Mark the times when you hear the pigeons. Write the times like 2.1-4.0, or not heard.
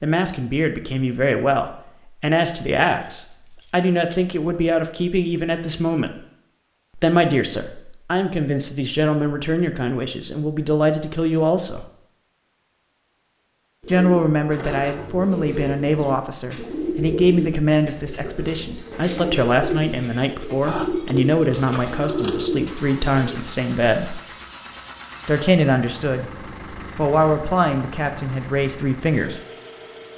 13.8-23.4.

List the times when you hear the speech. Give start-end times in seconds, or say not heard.
0.0-6.1, 7.0-11.8, 13.8-24.2, 25.2-26.3, 26.9-29.4.